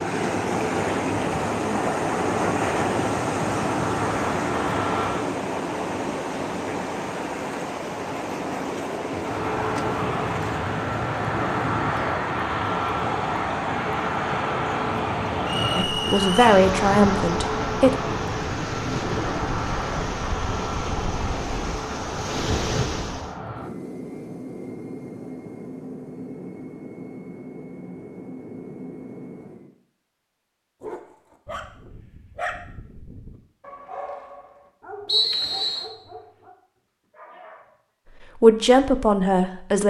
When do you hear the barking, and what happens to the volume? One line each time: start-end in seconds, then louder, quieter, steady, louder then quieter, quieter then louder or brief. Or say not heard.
30.8-37.8 quieter.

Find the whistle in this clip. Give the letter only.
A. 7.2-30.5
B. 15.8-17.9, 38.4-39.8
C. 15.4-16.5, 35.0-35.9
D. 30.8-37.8
C.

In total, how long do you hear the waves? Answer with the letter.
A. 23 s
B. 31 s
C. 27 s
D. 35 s
A.